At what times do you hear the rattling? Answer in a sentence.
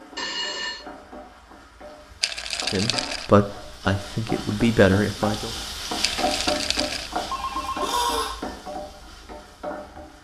The rattling can be heard from 2.2 to 3.3 s and from 6.0 to 7.1 s.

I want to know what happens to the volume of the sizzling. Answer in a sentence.
The loudness of the sizzling goes up, then down.